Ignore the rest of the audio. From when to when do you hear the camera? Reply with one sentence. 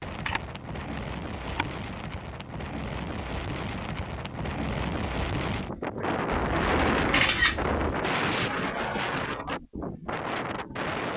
You can hear the camera from 0.2 to 1.6 s and from 6.3 to 8.1 s.